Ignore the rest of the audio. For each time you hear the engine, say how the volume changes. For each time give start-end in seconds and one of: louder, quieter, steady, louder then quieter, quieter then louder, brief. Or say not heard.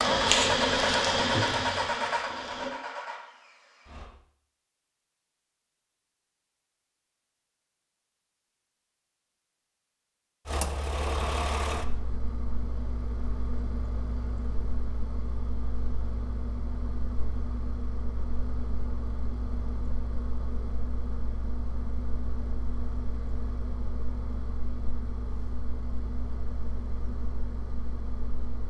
0.0-4.1 quieter
10.4-28.6 quieter.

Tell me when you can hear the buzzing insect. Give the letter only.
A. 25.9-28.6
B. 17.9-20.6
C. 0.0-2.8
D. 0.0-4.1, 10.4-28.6
C.